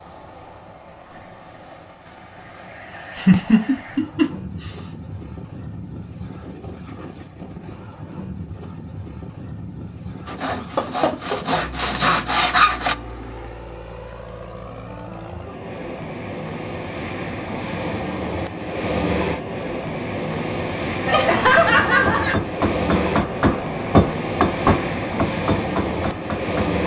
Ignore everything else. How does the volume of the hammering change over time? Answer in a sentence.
The volume of the hammering goes up, then down.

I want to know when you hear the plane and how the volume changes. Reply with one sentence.
You can hear the plane from 0.0 to 26.8 s, getting louder.